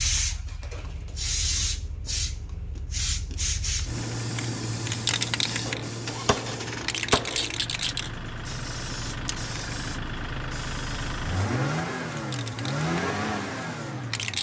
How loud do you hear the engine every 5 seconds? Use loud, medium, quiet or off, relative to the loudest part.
quiet, medium, loud.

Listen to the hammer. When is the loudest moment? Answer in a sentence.
The volume of the hammer peaks at 7 seconds.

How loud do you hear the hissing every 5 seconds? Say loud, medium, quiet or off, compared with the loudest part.
loud, loud, medium.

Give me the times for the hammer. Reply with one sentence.
You can hear the hammer from 5.7 to 7.5 s.